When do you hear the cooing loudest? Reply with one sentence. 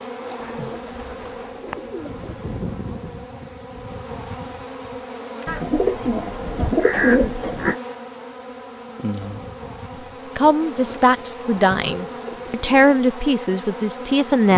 The volume of the cooing peaks at 7 seconds.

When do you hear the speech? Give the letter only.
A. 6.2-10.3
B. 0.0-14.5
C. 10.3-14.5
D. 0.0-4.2
C.